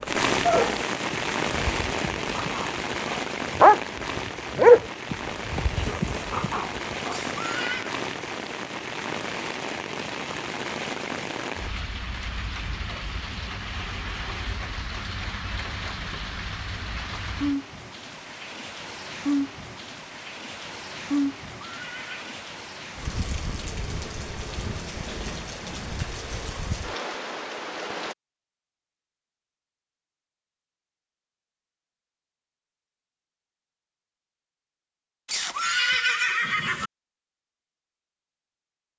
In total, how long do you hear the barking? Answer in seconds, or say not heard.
7 s.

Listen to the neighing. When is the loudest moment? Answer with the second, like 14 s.
36 s.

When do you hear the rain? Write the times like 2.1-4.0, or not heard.
0.1-28.1.